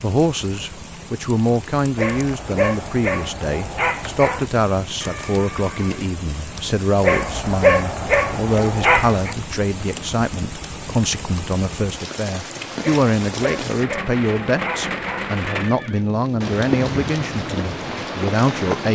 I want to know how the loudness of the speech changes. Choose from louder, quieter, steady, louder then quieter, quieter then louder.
steady.